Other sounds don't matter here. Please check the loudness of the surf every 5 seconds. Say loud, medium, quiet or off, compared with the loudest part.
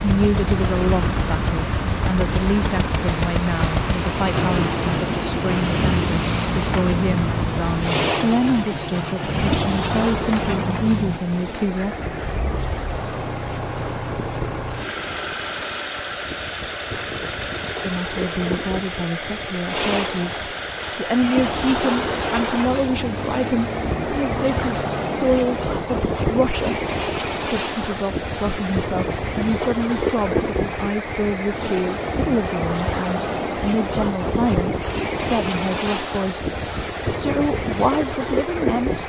loud, loud, medium, medium, loud, loud, loud, loud.